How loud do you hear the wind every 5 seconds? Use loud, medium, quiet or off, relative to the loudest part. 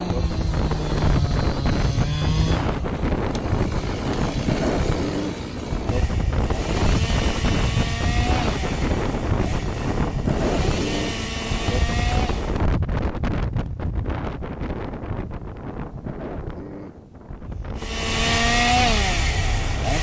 loud, loud, loud, medium.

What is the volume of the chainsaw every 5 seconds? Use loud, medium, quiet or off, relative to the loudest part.
medium, medium, medium, loud.